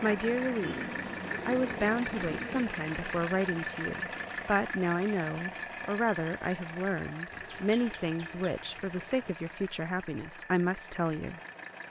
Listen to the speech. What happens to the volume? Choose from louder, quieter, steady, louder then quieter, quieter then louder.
steady.